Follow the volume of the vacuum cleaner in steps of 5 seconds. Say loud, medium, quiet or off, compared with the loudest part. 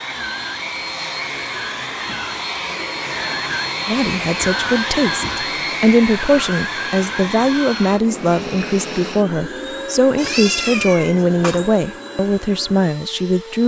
loud, loud, medium.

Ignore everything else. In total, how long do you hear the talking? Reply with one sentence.
You can hear the talking for 10 seconds altogether.